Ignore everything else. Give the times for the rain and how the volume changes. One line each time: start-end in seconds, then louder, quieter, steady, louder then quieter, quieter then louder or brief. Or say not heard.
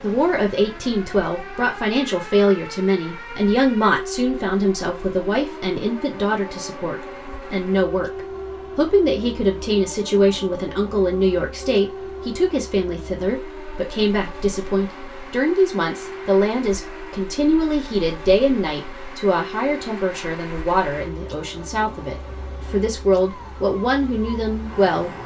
not heard.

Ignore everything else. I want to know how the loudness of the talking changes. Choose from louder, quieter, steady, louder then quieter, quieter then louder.
steady.